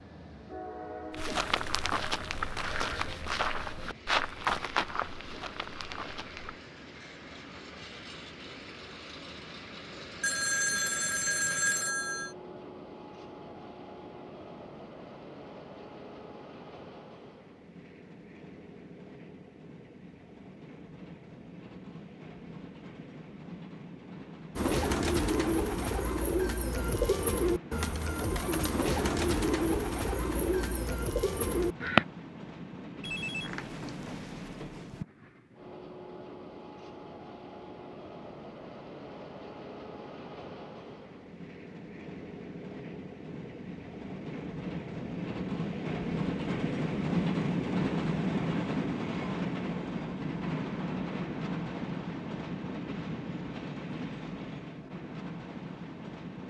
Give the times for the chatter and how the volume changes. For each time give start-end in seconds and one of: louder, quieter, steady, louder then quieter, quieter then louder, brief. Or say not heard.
not heard.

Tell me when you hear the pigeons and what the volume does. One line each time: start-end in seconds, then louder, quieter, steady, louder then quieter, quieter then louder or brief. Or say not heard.
24.6-32.0 steady.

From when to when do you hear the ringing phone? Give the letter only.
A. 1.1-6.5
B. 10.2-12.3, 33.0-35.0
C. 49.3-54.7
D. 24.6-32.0
B.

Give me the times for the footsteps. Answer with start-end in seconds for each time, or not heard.
1.1-6.5.